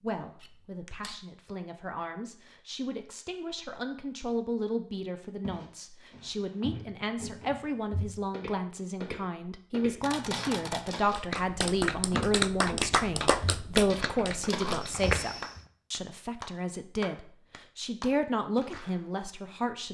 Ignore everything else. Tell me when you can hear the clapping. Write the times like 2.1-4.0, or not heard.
11.1-19.1.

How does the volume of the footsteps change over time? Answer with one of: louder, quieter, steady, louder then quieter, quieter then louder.
louder.